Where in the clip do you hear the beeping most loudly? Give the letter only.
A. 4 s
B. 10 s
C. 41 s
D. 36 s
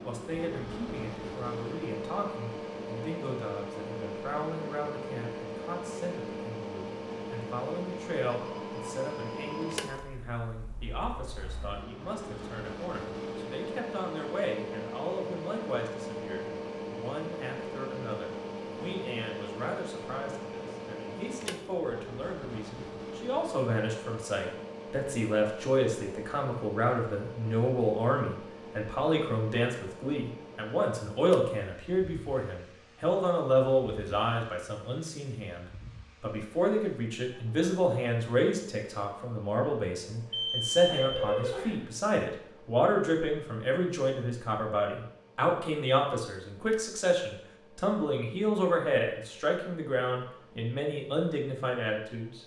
C.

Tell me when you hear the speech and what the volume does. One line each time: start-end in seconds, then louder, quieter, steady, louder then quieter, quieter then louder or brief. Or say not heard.
0.0-52.4 louder.